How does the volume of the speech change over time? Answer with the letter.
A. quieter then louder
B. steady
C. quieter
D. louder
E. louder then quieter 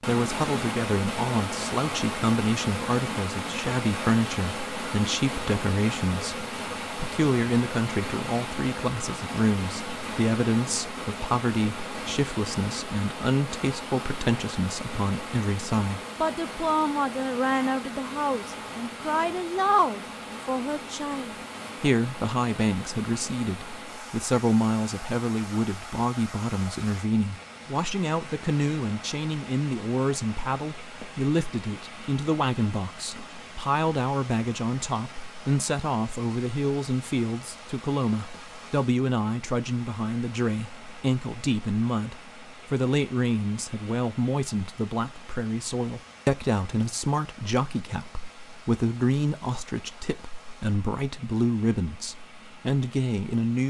B.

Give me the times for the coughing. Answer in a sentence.
The coughing can't be heard in this clip.